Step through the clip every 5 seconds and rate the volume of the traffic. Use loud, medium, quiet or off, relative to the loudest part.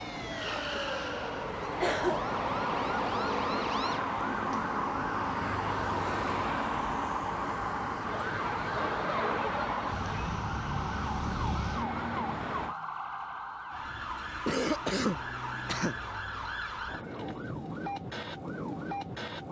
loud, loud, loud, off.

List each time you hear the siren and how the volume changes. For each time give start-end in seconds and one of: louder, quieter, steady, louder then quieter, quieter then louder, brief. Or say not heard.
0.0-19.4 steady.